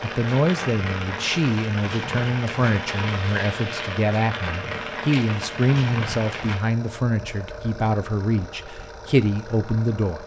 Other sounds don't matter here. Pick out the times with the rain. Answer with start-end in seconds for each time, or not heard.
0.0-6.6.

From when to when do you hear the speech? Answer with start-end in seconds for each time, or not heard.
0.0-10.2.